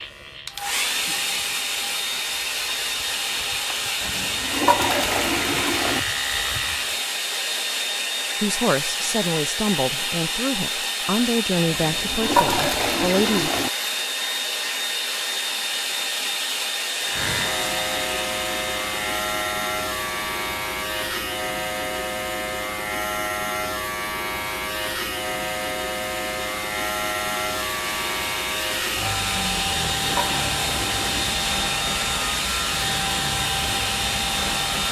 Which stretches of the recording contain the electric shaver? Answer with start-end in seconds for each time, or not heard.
0.0-7.0, 17.0-34.8.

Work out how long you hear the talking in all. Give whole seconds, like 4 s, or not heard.
5 s.